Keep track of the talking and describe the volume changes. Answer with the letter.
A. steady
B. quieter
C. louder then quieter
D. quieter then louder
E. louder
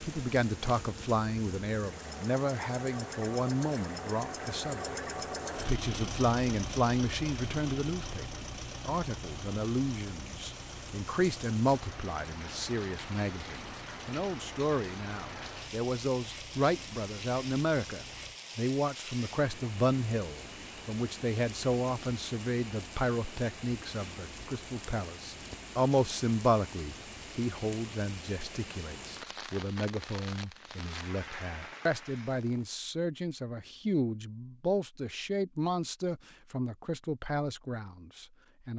A.